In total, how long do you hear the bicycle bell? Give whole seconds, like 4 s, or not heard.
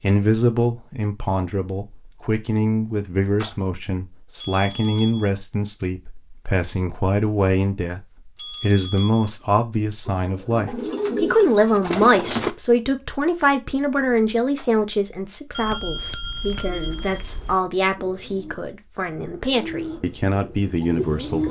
4 s.